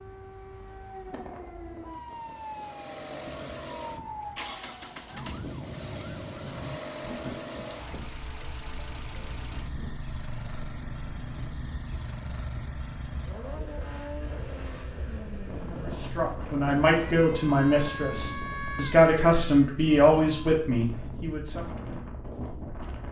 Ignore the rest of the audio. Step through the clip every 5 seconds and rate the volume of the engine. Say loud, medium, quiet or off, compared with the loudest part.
loud, loud, loud, loud, off.